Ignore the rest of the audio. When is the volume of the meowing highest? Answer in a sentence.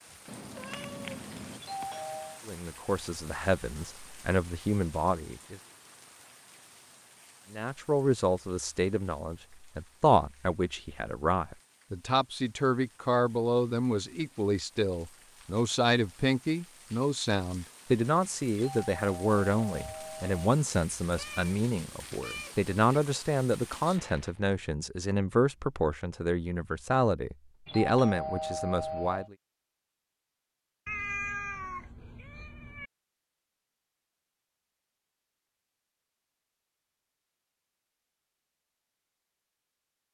The loudest moment of the meowing is at 31 seconds.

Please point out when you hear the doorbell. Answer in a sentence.
The doorbell can be heard from 1.6 to 2.4 s, from 18.6 to 20.4 s and from 27.6 to 29.3 s.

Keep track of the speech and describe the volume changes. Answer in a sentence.
The loudness of the speech stays about the same.